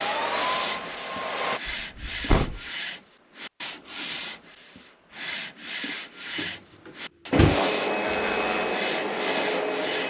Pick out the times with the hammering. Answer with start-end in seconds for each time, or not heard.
not heard.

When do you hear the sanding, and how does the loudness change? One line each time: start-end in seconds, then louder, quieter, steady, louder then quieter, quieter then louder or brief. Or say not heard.
0.0-10.0 steady.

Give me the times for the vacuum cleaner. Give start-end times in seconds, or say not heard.
0.0-1.6, 7.3-10.0.